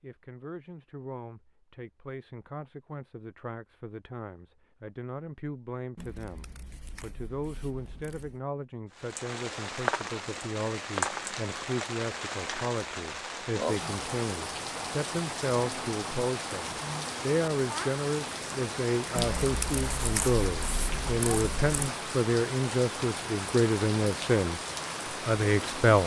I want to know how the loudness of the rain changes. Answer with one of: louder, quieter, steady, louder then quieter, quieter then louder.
steady.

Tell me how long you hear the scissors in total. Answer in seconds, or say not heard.
5 s.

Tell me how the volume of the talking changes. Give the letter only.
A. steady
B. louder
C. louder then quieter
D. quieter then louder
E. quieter
B.